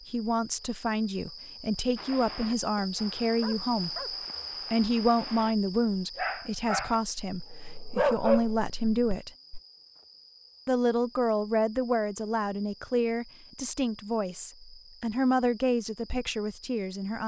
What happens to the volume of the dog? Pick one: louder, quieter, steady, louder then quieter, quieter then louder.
louder.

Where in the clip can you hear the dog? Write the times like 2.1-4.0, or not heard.
1.9-5.5, 6.2-9.6.